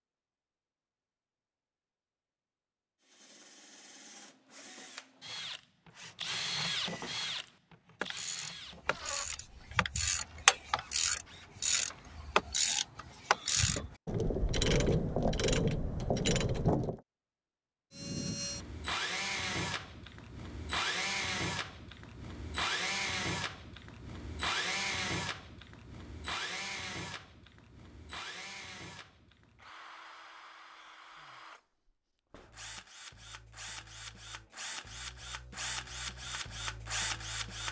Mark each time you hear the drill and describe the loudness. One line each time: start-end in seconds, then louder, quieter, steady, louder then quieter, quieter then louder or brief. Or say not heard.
3.0-12.2 louder then quieter
17.9-37.6 quieter then louder.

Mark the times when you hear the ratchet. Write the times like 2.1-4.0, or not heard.
5.9-17.0.